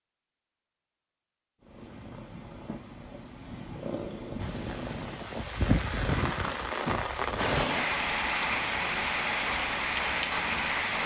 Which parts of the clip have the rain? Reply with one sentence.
The rain can be heard from 4.3 to 11.0 s.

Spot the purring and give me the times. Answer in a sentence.
You can hear the purring from 1.6 to 5.2 s.